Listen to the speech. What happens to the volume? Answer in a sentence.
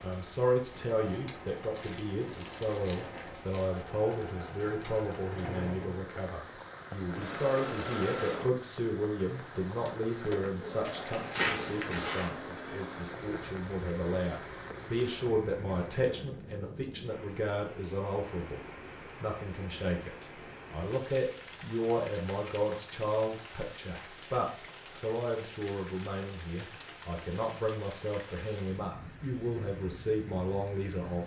The volume of the speech stays about the same.